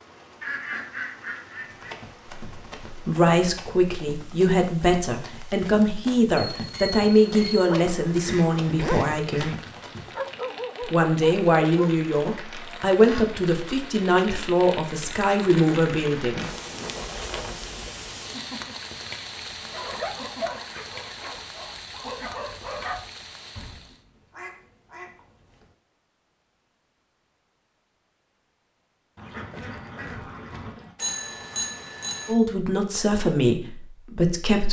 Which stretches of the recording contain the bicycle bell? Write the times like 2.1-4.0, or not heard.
6.5-7.7, 30.9-32.4.